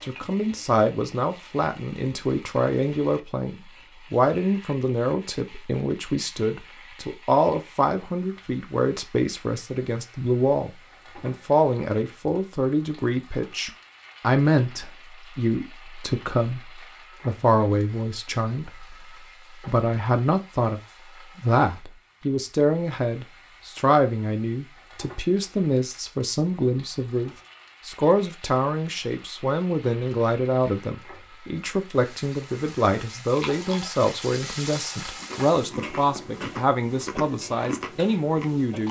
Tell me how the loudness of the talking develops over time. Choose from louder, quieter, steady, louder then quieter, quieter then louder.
steady.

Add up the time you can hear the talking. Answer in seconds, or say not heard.
39 s.